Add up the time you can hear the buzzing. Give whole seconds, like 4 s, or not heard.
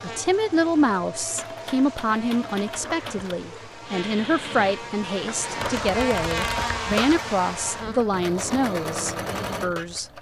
8 s.